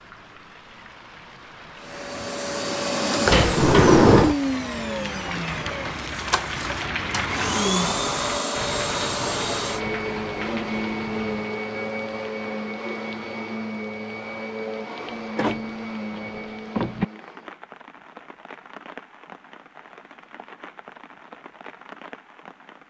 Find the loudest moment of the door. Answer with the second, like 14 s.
4 s.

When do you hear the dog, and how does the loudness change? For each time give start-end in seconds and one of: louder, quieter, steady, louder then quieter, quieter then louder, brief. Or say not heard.
not heard.